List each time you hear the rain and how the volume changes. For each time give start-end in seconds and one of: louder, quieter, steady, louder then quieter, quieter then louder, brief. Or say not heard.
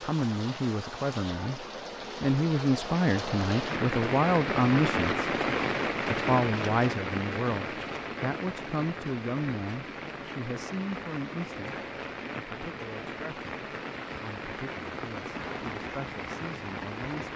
0.0-17.3 louder then quieter.